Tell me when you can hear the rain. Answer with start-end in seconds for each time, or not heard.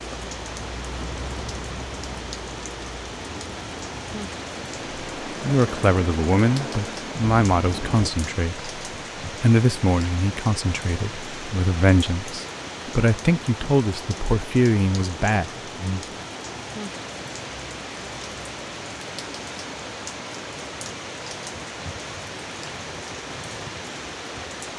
0.0-24.7.